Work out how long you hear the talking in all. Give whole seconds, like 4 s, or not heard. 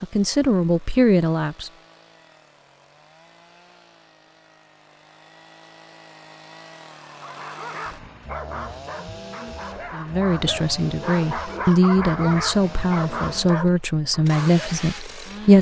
7 s.